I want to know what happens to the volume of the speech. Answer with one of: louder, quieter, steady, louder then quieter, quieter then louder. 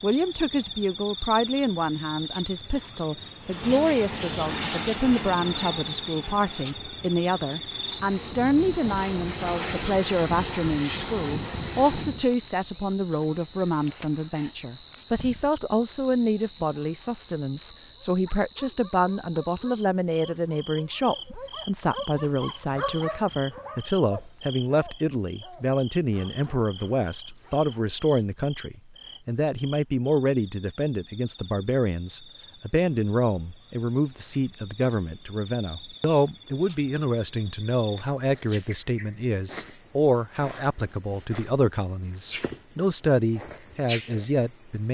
steady.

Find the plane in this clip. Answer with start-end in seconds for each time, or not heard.
3.4-12.2.